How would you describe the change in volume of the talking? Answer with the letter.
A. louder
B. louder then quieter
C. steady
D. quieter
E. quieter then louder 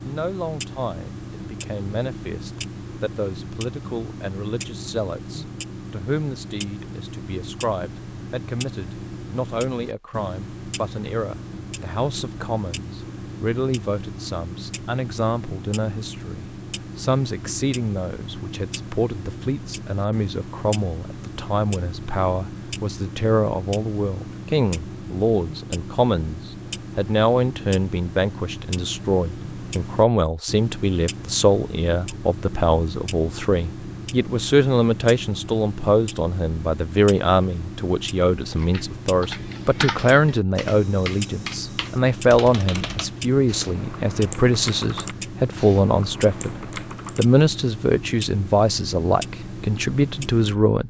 A.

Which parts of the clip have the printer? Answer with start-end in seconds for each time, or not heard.
not heard.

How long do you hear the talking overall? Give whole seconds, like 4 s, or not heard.
51 s.